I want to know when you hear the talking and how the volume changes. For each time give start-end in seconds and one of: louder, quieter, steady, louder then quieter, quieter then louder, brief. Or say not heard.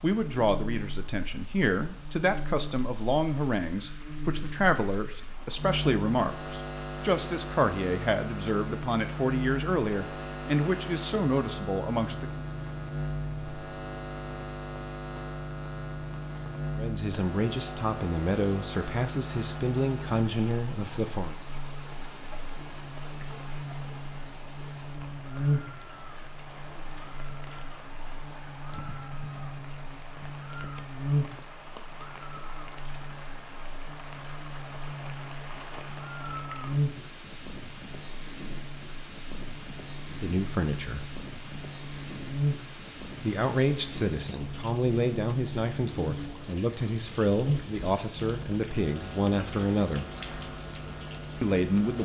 0.0-12.4 steady
16.8-21.4 steady
40.1-41.0 brief
43.2-50.1 steady
51.4-52.0 brief.